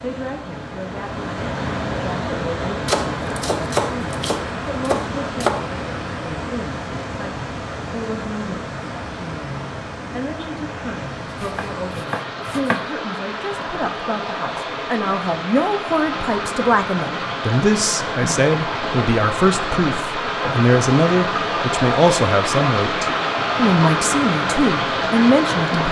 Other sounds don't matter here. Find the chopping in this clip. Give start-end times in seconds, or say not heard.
2.9-5.7, 11.4-12.8, 19.7-20.4.